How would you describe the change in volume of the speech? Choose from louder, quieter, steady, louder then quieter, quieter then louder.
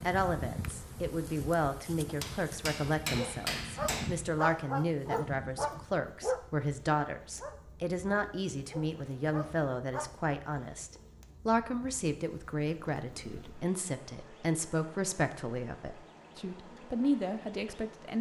steady.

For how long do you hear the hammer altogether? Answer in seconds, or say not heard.
2 s.